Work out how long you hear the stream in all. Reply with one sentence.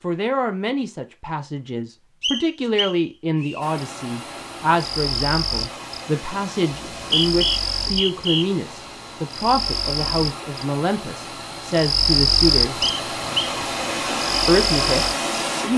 You can hear the stream for 12 seconds altogether.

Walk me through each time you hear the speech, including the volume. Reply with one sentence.
The speech can be heard from 0.0 to 12.8 s, at a steady volume; and briefly from 14.4 to 15.7 s.